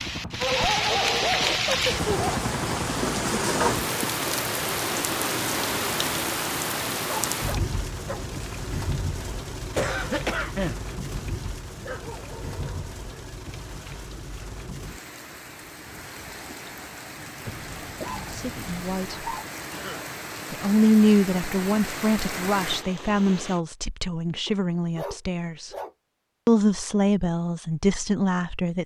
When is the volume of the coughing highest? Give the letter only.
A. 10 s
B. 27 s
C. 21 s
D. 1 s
A.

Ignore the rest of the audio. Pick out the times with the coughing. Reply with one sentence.
You can hear the coughing from 9.8 to 10.8 s and from 19.7 to 20.1 s.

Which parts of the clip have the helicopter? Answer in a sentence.
You can hear the helicopter from 0.0 to 3.9 s.